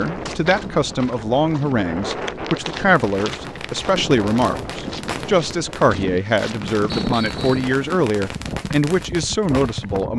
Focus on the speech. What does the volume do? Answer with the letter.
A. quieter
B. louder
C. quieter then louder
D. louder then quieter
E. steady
E.